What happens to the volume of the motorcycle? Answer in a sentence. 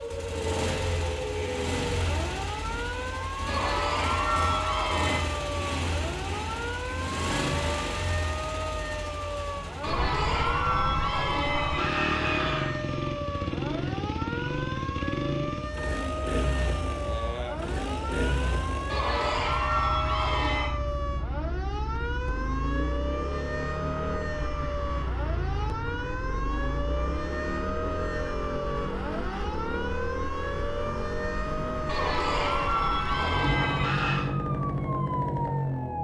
The loudness of the motorcycle stays about the same.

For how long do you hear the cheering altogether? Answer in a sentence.
You can hear the cheering for 9 seconds altogether.